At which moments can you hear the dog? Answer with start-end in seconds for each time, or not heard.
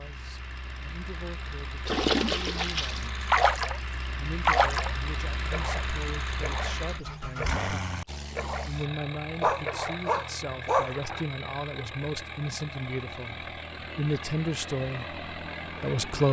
9.4-10.9.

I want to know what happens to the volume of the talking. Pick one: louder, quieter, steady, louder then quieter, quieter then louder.
louder.